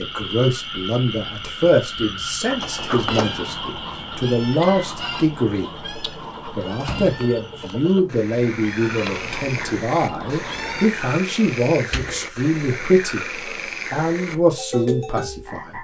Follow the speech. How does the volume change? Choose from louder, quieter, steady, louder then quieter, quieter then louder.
steady.